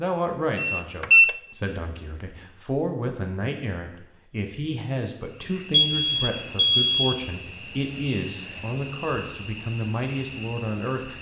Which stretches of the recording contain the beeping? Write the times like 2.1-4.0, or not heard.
0.6-1.4, 5.7-7.0.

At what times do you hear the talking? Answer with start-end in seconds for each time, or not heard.
0.0-11.1.